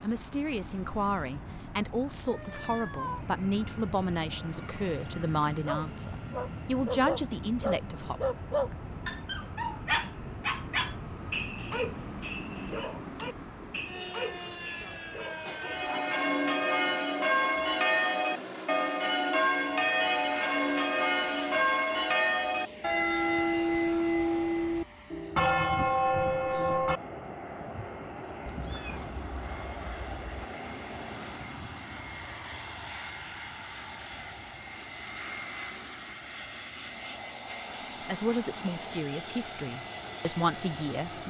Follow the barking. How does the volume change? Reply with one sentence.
The loudness of the barking goes down.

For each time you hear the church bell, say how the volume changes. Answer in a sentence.
You can hear the church bell from 15.6 to 27.0 s, at a steady volume.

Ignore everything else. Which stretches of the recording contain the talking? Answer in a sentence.
The talking can be heard from 0.0 to 8.2 s and from 38.0 to 41.2 s.